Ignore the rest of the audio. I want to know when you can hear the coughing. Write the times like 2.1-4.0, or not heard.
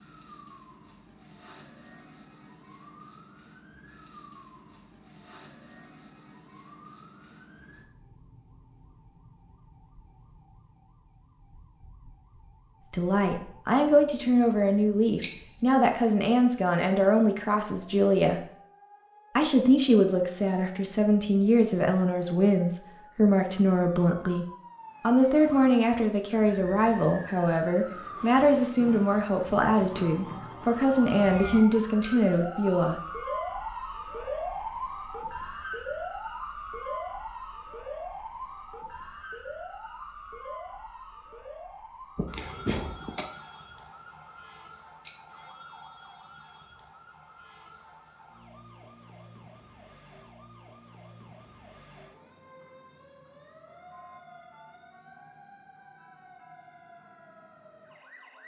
42.1-43.3.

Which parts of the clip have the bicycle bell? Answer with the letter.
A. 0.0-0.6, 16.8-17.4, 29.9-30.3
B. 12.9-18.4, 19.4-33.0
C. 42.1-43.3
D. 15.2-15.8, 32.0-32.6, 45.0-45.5
D.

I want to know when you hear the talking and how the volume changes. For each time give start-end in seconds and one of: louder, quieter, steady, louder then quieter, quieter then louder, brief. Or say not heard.
12.9-18.4 steady
19.4-33.0 steady.